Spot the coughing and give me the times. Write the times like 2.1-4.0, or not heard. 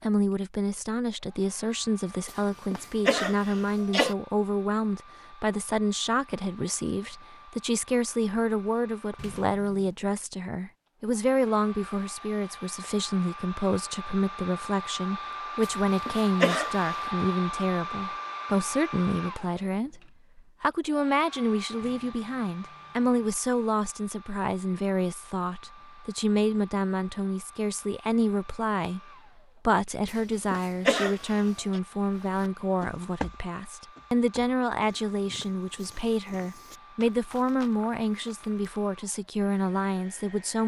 2.7-4.2, 15.6-16.9, 30.1-31.8.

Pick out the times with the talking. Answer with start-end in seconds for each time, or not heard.
0.0-29.0, 29.6-40.6.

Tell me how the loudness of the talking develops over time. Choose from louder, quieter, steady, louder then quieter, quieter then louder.
steady.